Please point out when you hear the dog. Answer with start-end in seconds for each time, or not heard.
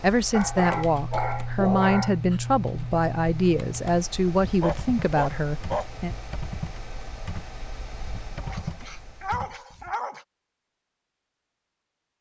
0.3-2.4, 4.4-5.8, 8.4-10.2.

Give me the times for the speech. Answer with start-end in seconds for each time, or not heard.
0.0-6.2.